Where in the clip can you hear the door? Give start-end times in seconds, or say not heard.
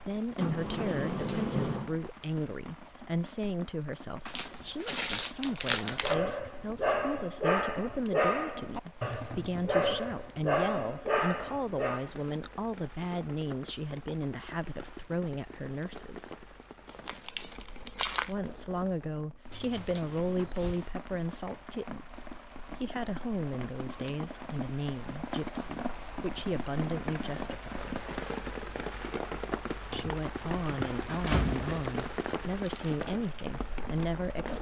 0.3-1.9, 19.5-20.9, 29.9-31.9.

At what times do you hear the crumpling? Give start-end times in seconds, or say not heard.
4.2-6.2, 16.9-18.4, 31.4-33.0.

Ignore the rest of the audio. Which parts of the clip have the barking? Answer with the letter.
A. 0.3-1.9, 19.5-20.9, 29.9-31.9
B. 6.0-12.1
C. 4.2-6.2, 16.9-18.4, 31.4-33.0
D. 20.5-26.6
B.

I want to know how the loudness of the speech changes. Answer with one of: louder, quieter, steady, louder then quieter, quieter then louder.
steady.